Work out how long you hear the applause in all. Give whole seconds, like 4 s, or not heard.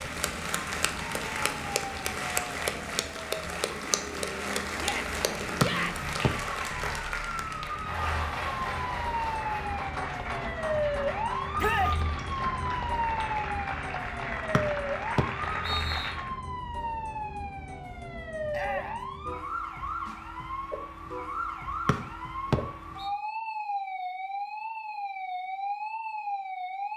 16 s.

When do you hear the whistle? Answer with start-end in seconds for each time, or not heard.
5.6-6.3, 14.5-16.1, 21.9-23.1.